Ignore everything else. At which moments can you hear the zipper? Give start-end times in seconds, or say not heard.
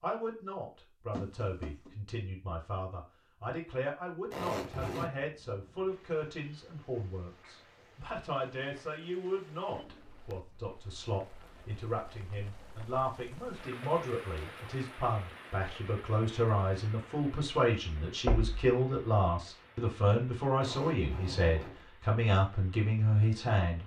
4.3-5.1, 20.6-21.9.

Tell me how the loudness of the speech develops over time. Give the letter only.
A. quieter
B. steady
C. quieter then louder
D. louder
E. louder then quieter
D.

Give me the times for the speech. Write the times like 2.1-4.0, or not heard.
0.0-23.8.